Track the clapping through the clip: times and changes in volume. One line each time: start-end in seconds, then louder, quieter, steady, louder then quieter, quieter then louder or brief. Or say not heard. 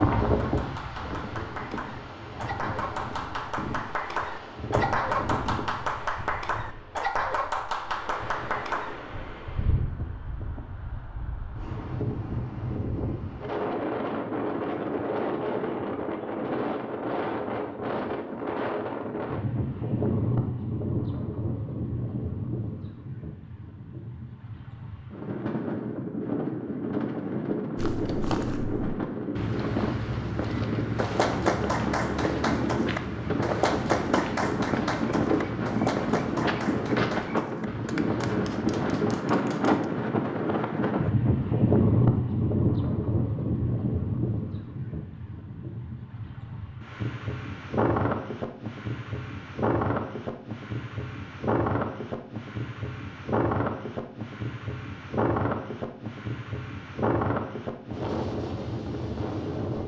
0.3-8.9 louder
30.9-39.9 quieter.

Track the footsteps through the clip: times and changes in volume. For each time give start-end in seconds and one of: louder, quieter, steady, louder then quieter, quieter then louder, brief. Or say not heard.
27.8-39.0 steady.